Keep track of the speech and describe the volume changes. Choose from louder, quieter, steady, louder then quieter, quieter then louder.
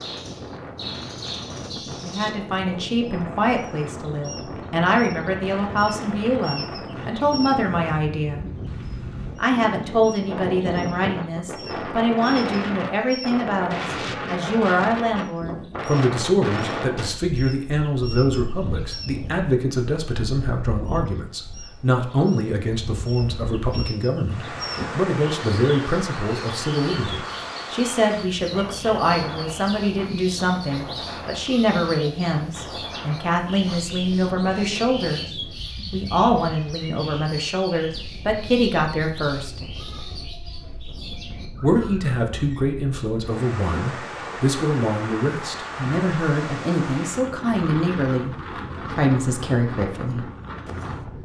steady.